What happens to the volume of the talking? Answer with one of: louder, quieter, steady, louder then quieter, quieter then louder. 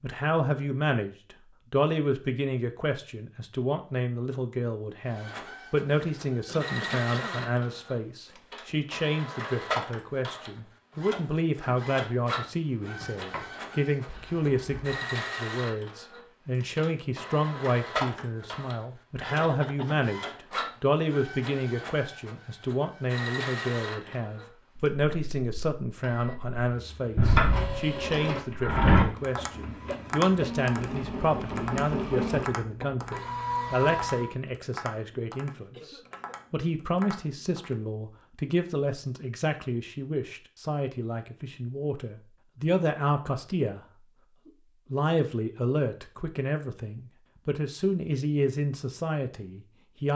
steady.